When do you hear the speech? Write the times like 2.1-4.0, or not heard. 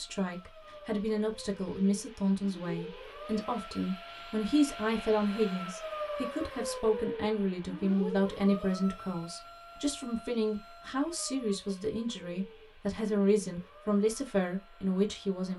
0.0-15.5.